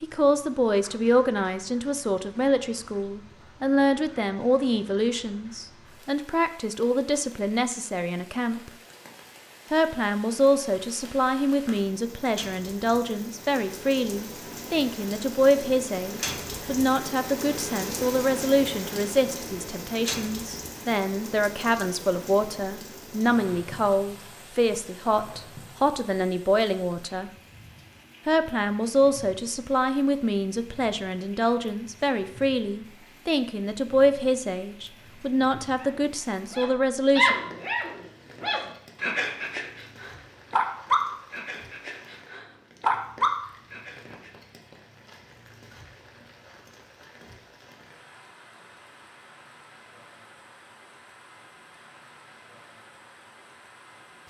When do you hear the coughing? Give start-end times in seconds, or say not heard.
not heard.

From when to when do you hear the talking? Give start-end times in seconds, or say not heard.
0.0-8.7, 9.7-27.3, 28.2-37.4.